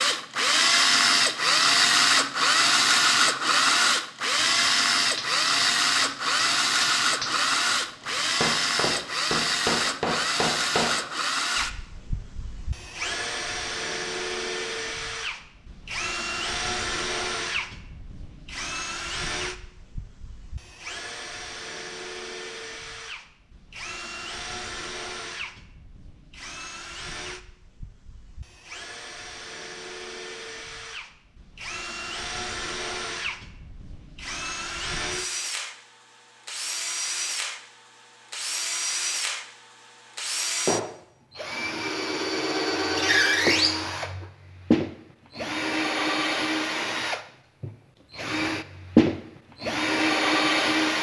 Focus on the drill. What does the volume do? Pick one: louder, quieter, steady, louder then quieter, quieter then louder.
quieter then louder.